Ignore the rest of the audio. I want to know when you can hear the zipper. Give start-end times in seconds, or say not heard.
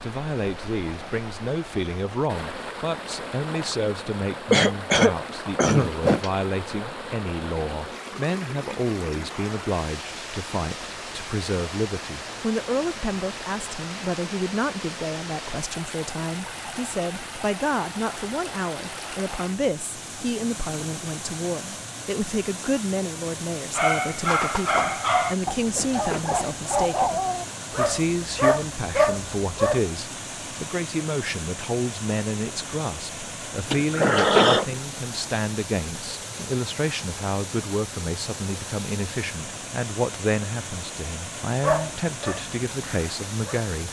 5.2-6.3, 25.6-26.9, 33.6-34.6.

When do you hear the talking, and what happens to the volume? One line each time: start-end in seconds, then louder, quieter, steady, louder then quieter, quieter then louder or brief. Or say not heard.
0.0-43.8 steady.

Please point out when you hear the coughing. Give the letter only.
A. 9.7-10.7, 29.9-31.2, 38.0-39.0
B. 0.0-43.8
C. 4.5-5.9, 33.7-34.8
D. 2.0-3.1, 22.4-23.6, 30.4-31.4
C.